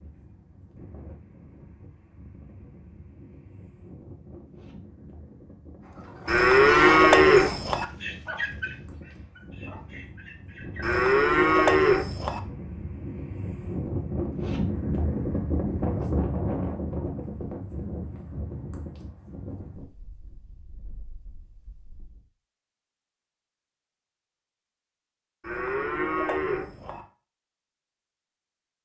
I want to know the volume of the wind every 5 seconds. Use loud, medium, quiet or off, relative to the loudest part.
quiet, quiet, loud, loud, quiet, off.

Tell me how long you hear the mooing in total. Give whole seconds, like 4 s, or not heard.
5 s.